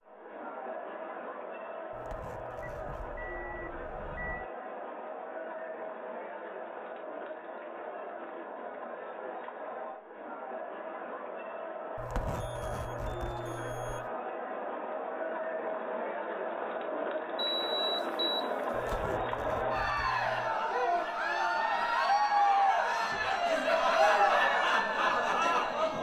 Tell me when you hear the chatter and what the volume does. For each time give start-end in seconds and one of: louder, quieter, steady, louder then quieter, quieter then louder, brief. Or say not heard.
0.0-25.9 louder.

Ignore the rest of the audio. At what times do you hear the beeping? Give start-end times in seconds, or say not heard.
2.6-4.5, 12.3-14.1, 17.4-19.0.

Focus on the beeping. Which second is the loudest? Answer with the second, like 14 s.
18 s.